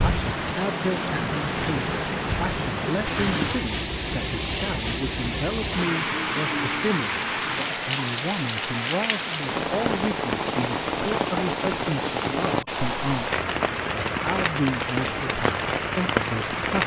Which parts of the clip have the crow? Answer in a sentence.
You can't hear the crow here.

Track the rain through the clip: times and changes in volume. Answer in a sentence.
You can hear the rain from 0.0 to 16.8 s, at a steady volume.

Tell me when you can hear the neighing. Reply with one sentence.
The neighing can't be heard in this clip.